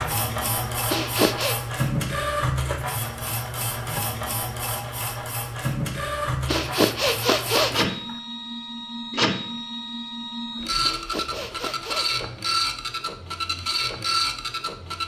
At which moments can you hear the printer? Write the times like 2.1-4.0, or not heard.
0.0-15.0.